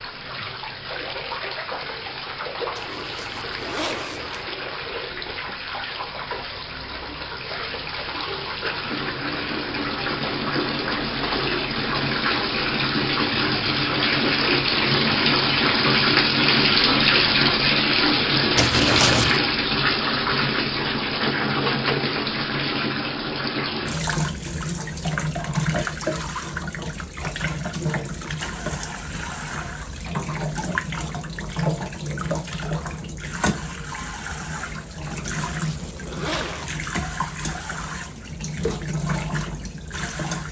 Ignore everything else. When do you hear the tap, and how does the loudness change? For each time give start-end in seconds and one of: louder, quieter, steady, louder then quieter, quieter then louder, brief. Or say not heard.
0.0-40.4 louder then quieter.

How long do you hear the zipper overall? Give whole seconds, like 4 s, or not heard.
4 s.